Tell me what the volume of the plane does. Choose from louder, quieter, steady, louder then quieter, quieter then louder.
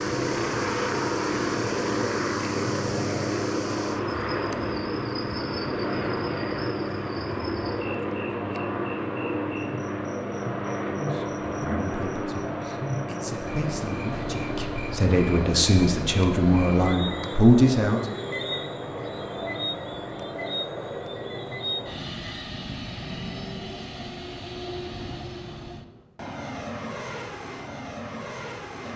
quieter.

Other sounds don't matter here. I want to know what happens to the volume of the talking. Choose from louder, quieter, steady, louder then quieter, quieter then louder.
louder.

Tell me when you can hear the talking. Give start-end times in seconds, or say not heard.
10.9-18.0.